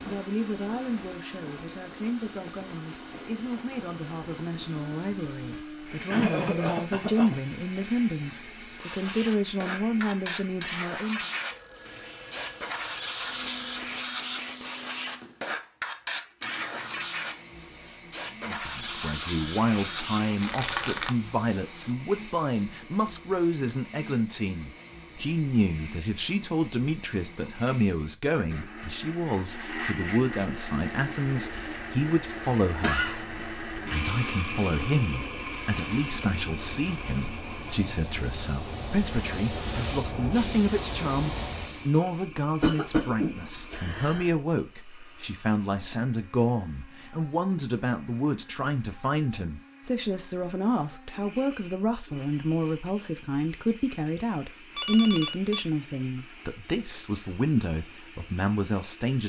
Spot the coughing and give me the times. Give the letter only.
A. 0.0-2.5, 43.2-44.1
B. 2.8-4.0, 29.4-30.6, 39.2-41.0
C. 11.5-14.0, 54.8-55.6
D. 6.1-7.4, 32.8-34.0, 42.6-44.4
D.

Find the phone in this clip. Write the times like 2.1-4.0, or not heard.
11.5-14.0, 54.8-55.6.